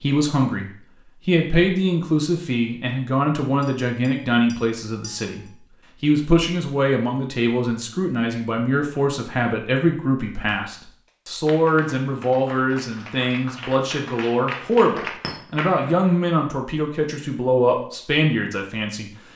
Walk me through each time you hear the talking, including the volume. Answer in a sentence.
The talking can be heard from 0.0 to 19.1 s, at a steady volume.